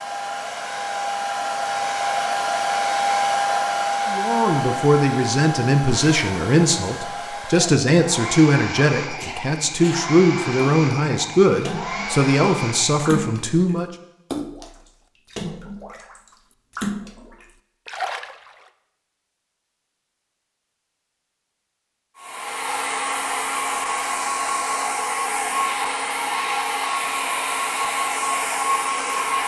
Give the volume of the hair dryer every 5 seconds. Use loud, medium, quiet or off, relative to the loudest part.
loud, medium, medium, off, loud, loud.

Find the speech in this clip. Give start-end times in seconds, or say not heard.
4.0-13.9.